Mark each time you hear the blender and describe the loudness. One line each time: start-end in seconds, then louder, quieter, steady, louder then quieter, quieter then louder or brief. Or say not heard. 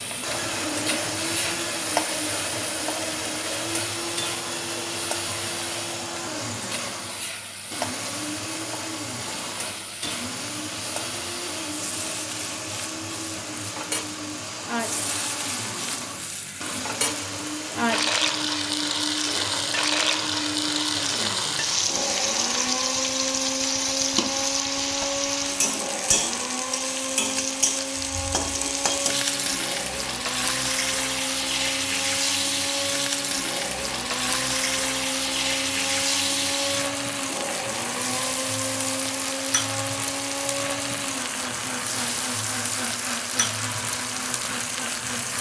0.0-45.3 steady.